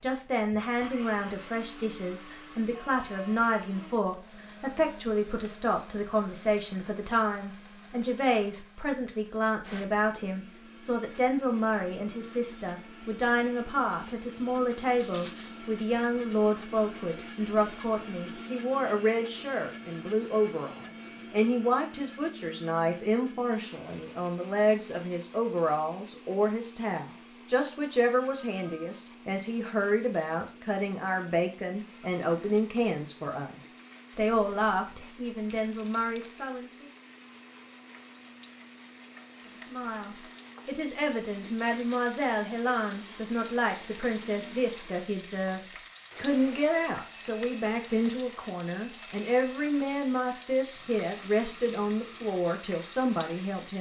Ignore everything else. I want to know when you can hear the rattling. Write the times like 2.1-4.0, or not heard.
15.0-15.6, 35.5-36.5.